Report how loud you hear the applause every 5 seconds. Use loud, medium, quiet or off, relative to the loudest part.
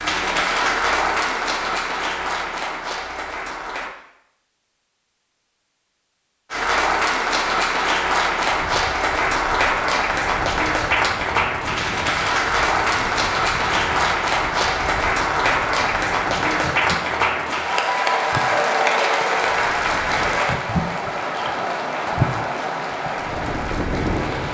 loud, loud, loud, loud, medium.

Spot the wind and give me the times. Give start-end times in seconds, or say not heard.
8.4-24.4.